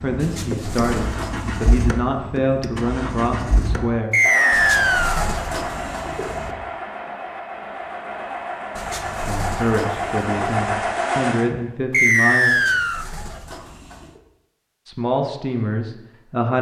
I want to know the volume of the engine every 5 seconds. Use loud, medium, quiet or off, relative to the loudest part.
medium, medium, loud, off.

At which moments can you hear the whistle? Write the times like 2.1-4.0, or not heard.
4.1-5.2, 11.9-13.1.